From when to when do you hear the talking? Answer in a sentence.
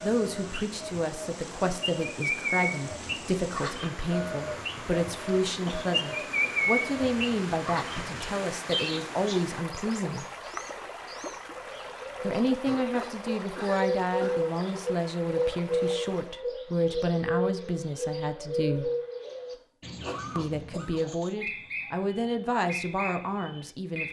You can hear the talking from 0.0 to 10.2 s, from 12.2 to 18.9 s and from 20.4 to 24.0 s.